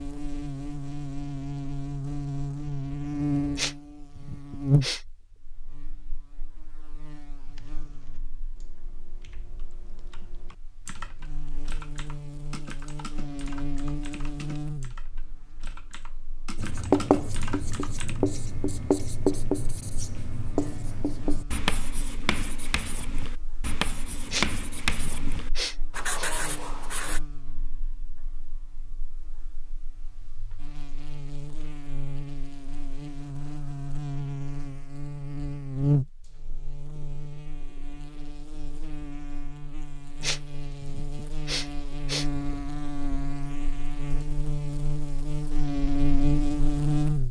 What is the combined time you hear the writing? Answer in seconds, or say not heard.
11 s.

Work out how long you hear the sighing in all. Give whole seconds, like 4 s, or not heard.
6 s.